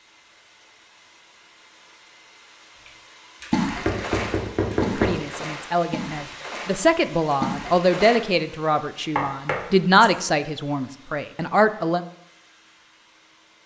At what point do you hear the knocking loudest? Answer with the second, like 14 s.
5 s.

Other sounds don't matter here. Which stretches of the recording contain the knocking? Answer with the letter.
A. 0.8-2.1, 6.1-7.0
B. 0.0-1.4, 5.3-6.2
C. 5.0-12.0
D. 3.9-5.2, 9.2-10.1
D.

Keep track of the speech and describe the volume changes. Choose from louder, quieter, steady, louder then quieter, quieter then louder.
louder then quieter.